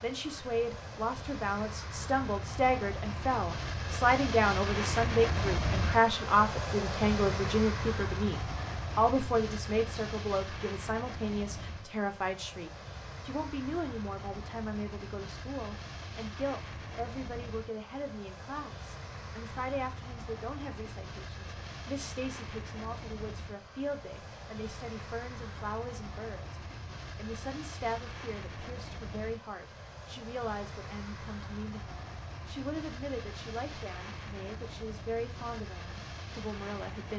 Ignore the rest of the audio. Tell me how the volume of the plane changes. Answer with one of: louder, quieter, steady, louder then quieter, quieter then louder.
quieter.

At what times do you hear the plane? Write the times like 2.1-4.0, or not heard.
0.0-37.1.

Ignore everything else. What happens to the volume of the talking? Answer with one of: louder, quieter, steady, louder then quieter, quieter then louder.
quieter.